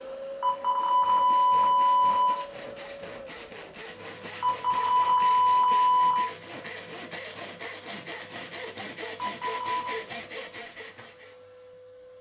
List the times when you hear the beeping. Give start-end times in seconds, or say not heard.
0.4-2.5, 4.4-6.3, 9.2-10.1.